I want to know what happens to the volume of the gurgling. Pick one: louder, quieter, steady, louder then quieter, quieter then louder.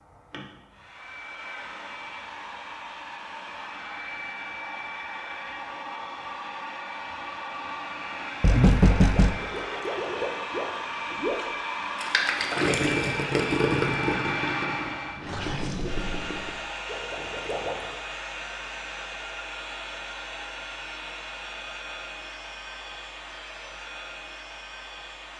louder then quieter.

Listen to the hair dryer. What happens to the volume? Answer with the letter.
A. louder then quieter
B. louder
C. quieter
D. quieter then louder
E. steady
A.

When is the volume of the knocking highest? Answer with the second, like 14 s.
9 s.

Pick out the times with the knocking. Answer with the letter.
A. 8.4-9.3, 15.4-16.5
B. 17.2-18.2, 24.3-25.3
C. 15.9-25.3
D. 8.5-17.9
A.